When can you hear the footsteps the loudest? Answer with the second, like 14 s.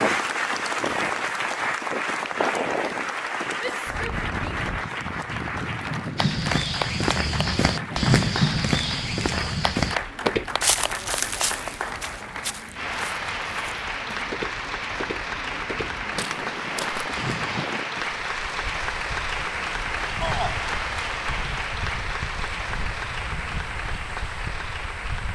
8 s.